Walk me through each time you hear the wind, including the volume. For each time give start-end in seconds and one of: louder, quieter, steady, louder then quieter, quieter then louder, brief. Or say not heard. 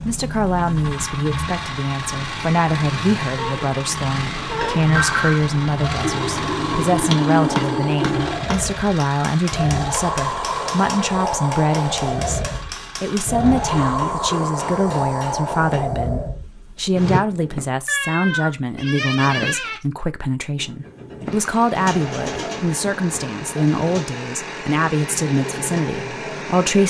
0.0-17.2 louder.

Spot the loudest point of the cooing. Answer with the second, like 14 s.
7 s.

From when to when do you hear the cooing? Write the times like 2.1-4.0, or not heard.
6.0-8.4, 21.8-24.1.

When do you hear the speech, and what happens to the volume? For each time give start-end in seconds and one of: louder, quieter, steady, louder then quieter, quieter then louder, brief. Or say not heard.
0.0-12.4 steady
13.0-26.8 steady.